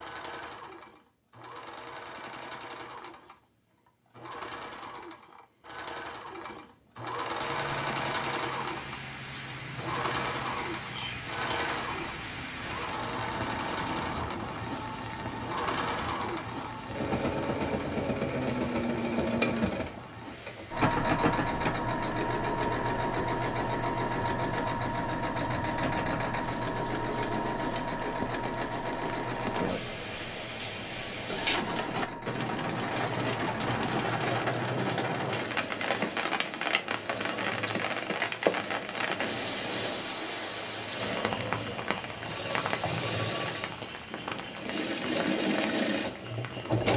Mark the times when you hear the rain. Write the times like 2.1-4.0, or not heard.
7.3-46.9.